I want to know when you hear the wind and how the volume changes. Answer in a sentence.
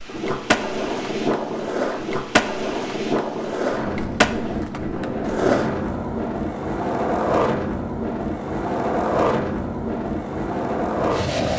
The wind can be heard from 0.0 to 11.5 s, at a steady volume.